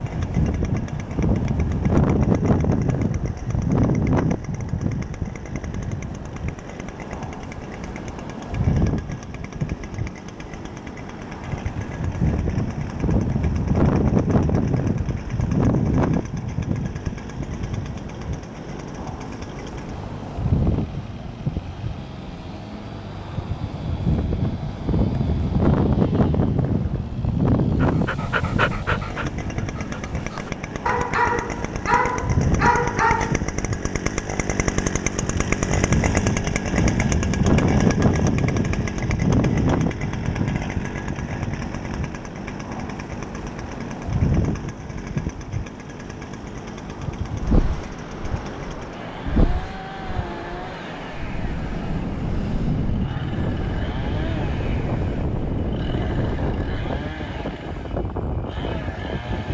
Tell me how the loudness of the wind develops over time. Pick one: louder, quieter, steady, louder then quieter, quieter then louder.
steady.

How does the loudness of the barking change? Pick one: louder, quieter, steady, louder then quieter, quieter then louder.
quieter then louder.